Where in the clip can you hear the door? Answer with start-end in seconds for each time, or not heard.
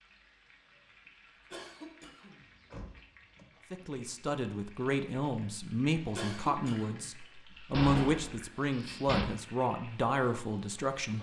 2.4-3.5, 7.7-9.2.